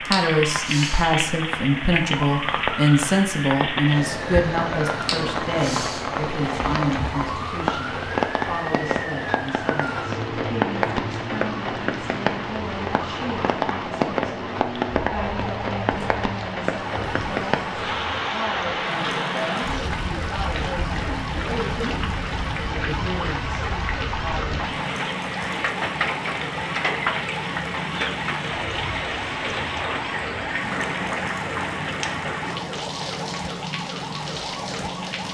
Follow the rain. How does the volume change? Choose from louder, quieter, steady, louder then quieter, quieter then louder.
steady.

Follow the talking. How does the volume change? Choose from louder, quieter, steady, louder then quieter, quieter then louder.
quieter.